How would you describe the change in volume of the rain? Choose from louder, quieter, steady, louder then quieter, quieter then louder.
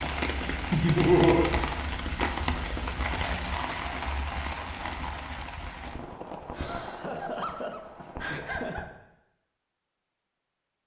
quieter.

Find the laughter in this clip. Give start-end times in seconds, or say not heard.
0.7-1.5, 6.5-8.9.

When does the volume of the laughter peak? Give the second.
1 s.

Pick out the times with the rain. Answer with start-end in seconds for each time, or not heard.
0.0-8.8.